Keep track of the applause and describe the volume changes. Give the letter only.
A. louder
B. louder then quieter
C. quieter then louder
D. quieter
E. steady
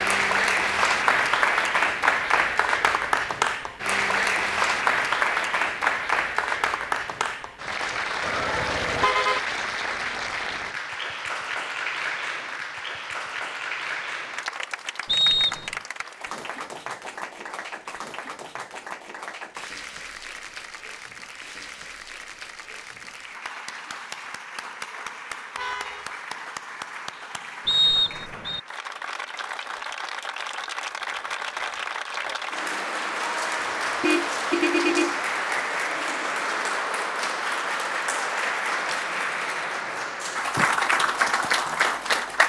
C.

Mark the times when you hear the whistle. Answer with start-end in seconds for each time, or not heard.
15.1-15.8, 27.6-28.6.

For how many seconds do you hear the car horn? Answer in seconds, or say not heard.
3 s.